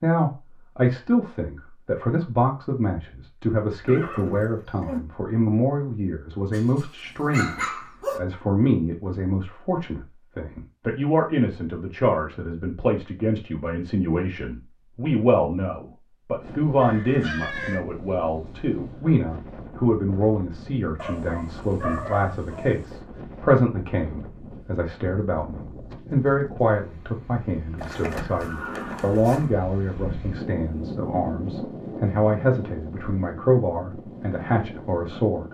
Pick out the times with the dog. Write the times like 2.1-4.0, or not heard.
6.5-8.2, 20.9-22.9.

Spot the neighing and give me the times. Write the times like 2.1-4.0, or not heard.
3.9-5.0, 16.8-17.8, 27.8-29.6.